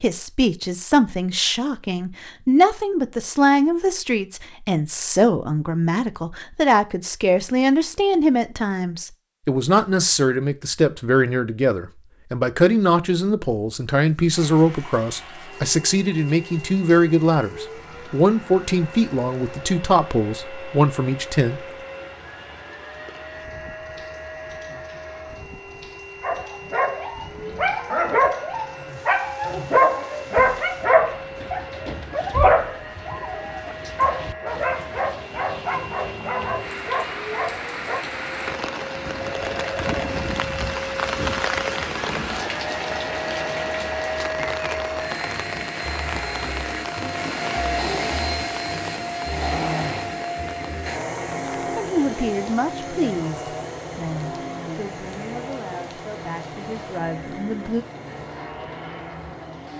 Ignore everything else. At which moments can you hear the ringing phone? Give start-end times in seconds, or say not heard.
39.2-40.1.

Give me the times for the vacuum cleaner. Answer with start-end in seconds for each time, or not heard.
14.2-59.7.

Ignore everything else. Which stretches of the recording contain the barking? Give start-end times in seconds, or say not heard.
26.2-38.0.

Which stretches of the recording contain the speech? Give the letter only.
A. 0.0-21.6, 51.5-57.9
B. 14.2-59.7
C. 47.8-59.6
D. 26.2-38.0
A.